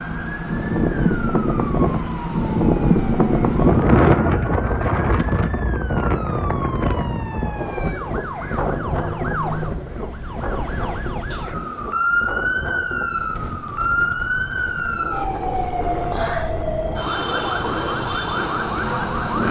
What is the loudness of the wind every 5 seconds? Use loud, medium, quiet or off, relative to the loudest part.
loud, medium, quiet, quiet.